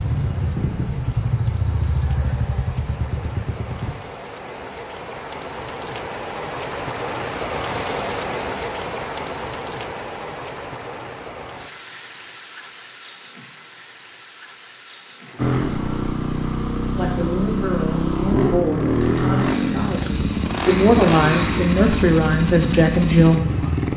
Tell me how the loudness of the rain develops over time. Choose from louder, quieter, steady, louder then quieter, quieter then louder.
louder then quieter.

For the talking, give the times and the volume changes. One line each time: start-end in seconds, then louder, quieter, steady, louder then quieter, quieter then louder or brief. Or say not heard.
16.9-23.4 louder.